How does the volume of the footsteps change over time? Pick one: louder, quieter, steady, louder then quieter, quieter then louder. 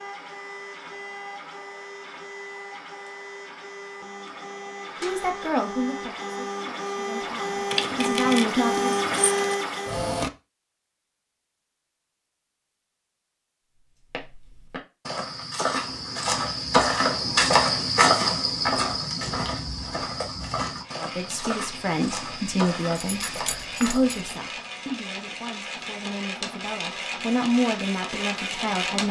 louder then quieter.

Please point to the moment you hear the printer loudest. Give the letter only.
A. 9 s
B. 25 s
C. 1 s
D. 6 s
A.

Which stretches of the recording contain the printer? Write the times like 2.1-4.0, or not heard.
0.0-10.3, 20.8-29.0.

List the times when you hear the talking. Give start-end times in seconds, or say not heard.
5.0-8.9, 20.9-29.0.